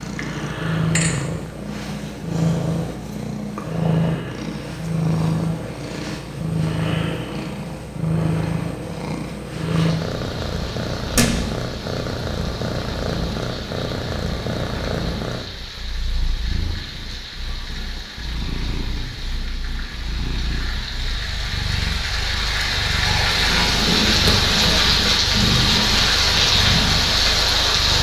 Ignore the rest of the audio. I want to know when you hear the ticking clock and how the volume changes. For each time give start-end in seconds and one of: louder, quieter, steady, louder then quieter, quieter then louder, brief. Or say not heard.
not heard.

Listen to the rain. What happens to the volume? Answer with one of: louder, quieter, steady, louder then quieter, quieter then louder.
louder.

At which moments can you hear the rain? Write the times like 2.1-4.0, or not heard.
9.6-27.9.